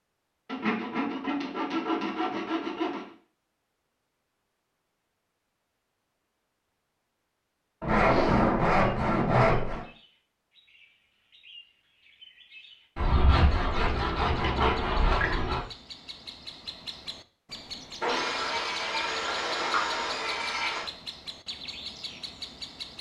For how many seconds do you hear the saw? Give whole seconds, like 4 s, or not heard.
10 s.